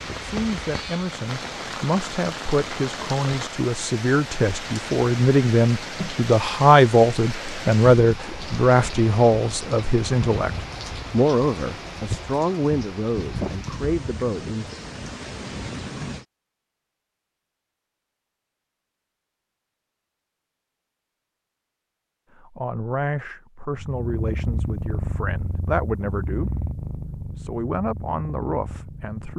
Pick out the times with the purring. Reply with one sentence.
You can hear the purring from 23.7 to 29.3 s.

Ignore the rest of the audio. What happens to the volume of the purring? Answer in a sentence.
The loudness of the purring goes down.